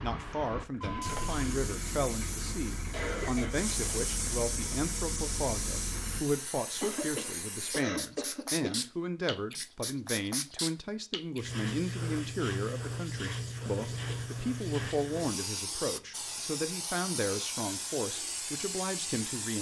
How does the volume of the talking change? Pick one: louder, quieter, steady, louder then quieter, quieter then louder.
steady.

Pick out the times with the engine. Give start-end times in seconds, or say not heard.
0.0-6.2.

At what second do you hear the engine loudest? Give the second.
1 s.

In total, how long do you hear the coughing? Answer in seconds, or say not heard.
3 s.